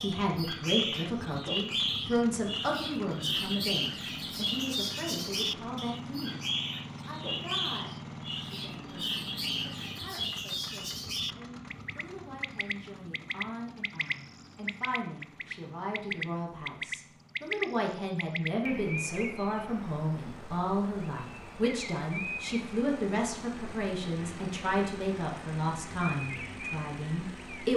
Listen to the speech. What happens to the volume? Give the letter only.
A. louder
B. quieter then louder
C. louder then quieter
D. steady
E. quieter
B.